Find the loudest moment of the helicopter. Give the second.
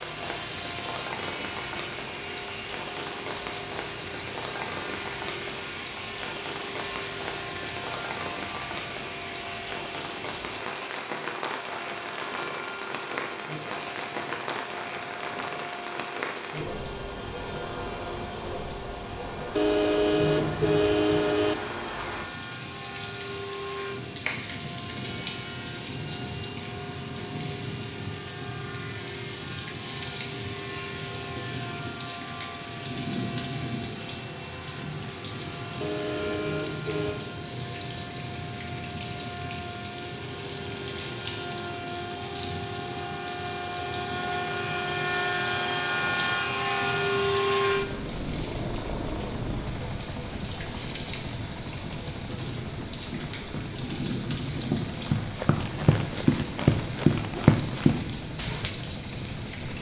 47 s.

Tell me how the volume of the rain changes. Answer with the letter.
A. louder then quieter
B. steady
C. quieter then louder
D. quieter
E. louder
B.